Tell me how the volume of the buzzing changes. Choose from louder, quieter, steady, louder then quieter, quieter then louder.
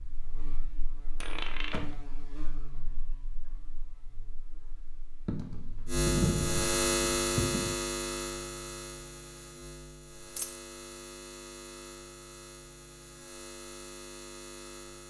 louder then quieter.